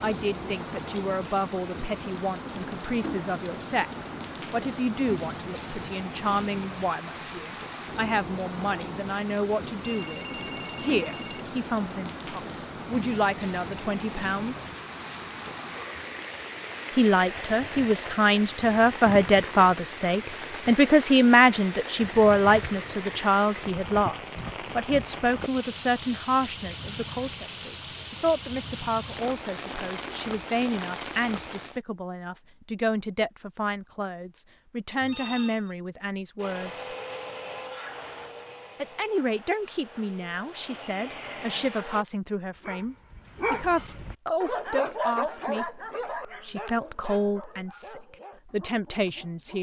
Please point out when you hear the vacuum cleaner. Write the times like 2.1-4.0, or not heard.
36.4-42.0.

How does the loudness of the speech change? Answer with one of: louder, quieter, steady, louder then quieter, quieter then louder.
louder then quieter.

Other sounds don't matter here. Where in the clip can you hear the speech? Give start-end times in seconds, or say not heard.
0.0-14.7, 16.9-37.0, 38.8-49.5.